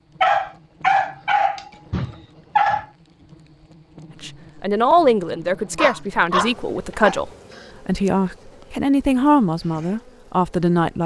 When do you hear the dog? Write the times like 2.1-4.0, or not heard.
0.2-2.9, 5.8-7.7.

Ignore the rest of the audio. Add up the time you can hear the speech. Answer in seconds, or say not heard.
7 s.